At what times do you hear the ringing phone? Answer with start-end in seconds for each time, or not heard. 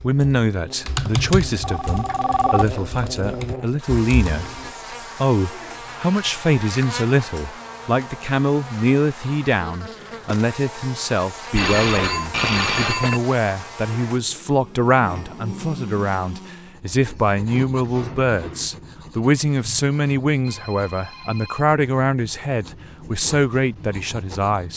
1.6-2.8, 11.5-13.2, 20.4-21.6.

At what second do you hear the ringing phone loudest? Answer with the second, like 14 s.
13 s.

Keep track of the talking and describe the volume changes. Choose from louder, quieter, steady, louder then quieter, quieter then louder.
steady.